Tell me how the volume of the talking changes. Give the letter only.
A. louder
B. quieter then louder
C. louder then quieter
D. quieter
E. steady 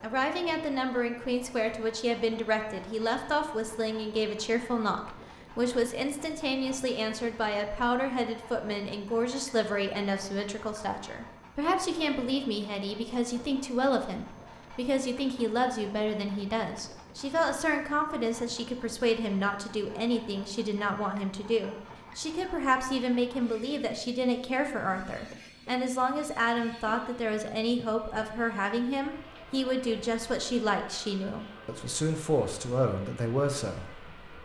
E.